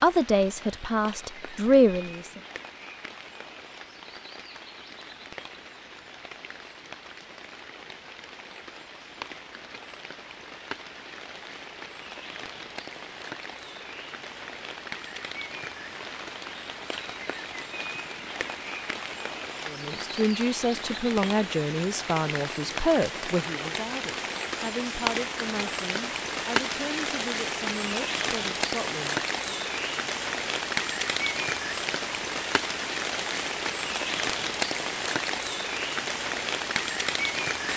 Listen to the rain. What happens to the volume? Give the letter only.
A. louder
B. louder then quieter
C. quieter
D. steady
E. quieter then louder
A.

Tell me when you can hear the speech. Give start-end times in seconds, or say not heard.
0.0-2.4, 19.6-29.6.